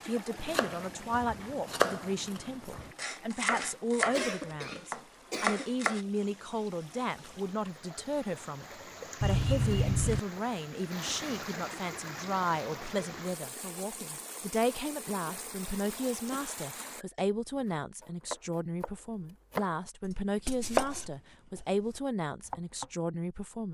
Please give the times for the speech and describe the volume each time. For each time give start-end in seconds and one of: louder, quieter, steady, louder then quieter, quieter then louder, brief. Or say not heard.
0.0-23.6 steady.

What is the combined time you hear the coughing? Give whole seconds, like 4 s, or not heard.
4 s.